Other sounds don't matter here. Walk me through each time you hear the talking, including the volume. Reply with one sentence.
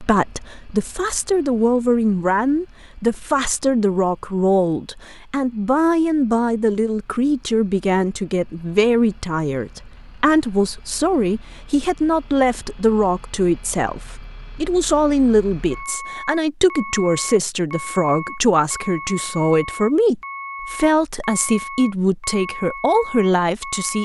You can hear the talking from 0.0 to 24.0 s, at a steady volume.